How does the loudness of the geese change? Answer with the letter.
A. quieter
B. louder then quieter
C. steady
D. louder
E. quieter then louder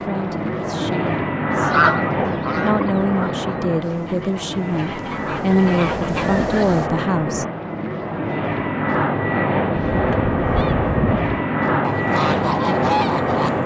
E.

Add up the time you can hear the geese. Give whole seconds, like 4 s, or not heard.
9 s.